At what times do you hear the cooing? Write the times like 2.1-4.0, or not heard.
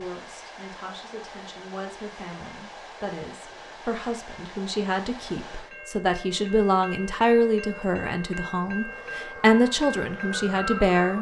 not heard.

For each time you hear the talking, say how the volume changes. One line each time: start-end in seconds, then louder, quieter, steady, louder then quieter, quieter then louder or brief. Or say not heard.
0.0-11.1 louder.